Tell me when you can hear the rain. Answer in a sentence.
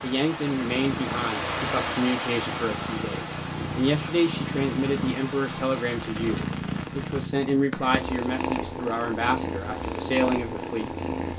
The rain can be heard from 0.0 to 7.3 s.